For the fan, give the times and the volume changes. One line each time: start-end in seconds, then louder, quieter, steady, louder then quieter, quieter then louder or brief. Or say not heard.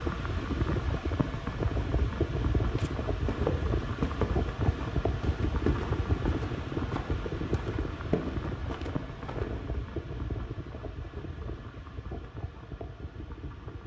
0.0-13.8 quieter.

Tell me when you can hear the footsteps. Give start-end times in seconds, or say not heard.
2.6-9.8.